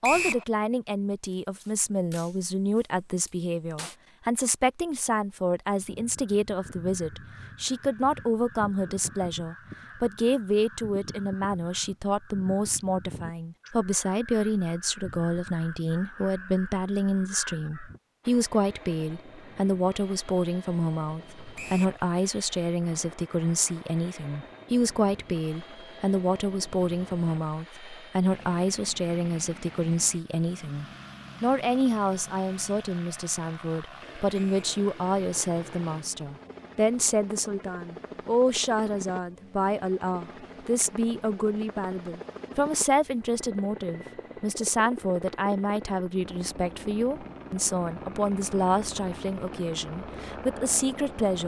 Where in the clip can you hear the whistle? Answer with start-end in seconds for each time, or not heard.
0.0-0.5, 21.6-22.0, 34.3-34.8.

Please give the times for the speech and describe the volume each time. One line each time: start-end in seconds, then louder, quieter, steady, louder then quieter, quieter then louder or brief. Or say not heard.
0.0-51.4 steady.